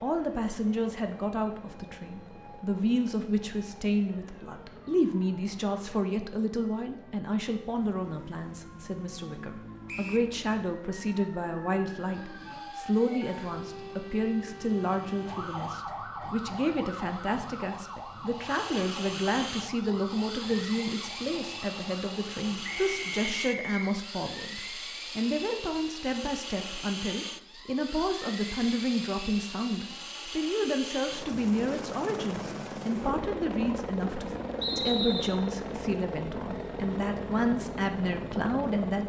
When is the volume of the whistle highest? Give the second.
35 s.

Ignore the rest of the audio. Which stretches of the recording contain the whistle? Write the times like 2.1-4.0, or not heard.
9.8-10.3, 22.8-23.9, 34.6-35.4.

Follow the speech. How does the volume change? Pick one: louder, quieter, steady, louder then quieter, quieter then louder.
steady.